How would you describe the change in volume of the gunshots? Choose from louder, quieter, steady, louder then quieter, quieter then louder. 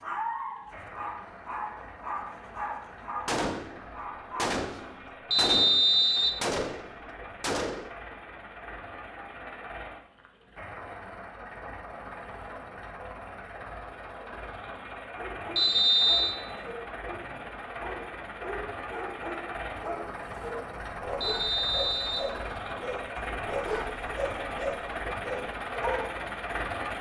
louder then quieter.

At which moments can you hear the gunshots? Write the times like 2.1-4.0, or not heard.
3.2-7.9.